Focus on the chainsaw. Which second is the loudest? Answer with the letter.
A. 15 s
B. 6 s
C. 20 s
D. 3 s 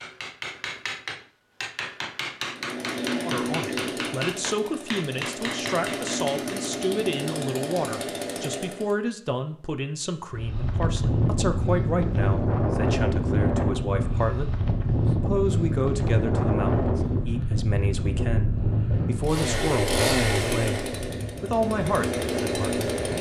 C.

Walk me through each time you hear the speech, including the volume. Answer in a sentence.
The speech can be heard from 3.2 to 22.9 s, at a steady volume.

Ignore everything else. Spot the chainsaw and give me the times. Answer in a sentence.
You can hear the chainsaw from 2.5 to 8.9 s and from 19.2 to 23.1 s.